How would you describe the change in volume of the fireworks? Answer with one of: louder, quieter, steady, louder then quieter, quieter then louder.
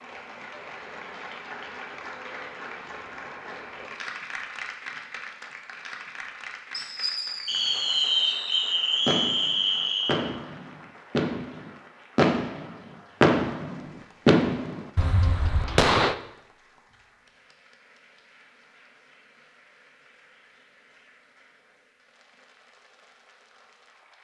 louder.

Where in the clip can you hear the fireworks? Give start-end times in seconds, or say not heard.
6.7-16.1.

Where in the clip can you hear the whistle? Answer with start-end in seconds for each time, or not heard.
7.5-10.2.